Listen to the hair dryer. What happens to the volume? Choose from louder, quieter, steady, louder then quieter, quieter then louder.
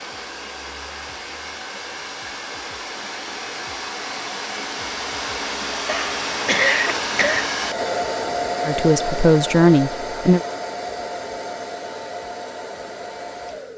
louder then quieter.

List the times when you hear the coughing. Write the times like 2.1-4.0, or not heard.
5.8-7.5.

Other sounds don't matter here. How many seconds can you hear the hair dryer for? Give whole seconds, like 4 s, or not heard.
14 s.